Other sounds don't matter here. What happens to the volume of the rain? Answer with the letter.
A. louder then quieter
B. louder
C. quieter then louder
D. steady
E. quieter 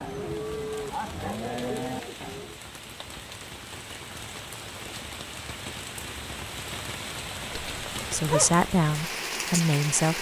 B.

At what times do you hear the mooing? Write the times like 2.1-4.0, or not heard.
0.0-2.6.